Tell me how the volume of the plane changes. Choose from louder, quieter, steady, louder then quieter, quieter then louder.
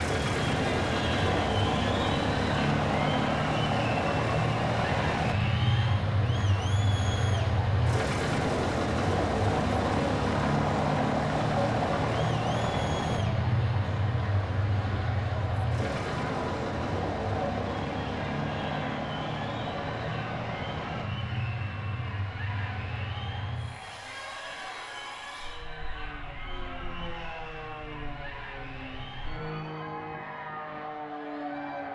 quieter.